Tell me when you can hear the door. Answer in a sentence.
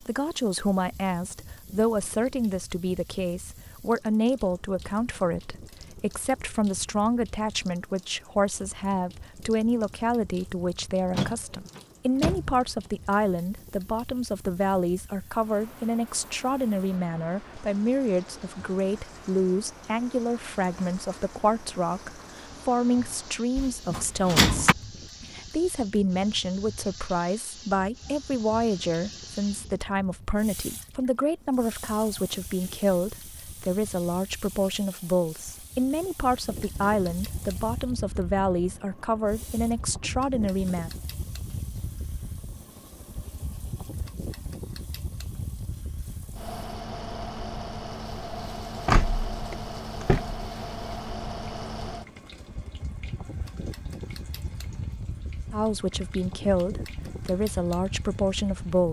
You can hear the door from 11.1 to 12.7 s, from 23.6 to 24.8 s and from 48.9 to 50.4 s.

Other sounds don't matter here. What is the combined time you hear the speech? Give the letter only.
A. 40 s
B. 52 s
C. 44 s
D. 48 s
C.